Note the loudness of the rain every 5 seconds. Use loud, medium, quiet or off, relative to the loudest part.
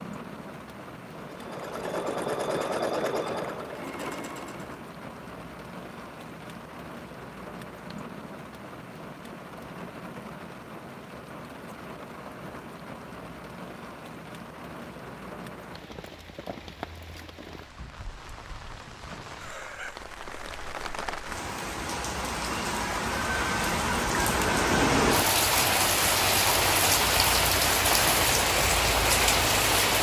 quiet, quiet, quiet, quiet, medium, loud.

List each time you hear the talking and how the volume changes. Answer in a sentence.
The talking can't be heard in this clip.